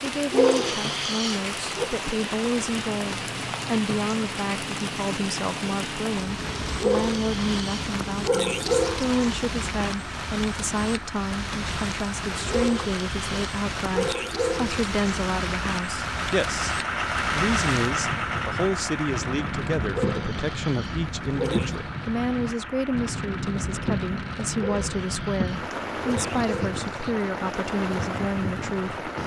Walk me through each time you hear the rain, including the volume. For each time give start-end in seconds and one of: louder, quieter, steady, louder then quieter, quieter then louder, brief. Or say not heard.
0.0-29.2 steady.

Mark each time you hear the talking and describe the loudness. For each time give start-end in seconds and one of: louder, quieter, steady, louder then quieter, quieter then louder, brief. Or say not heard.
0.0-29.0 steady.